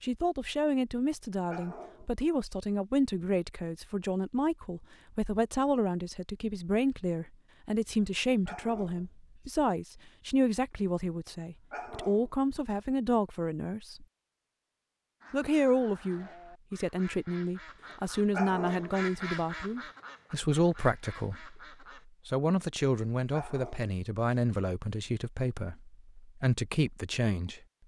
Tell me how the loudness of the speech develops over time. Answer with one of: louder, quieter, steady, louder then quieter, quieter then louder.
steady.